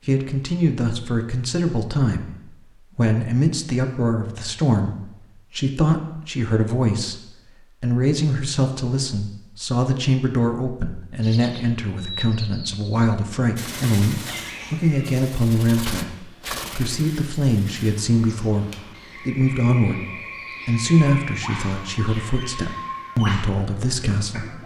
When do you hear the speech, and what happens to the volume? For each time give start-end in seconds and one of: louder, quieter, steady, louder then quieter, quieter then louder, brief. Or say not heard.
0.1-24.6 steady.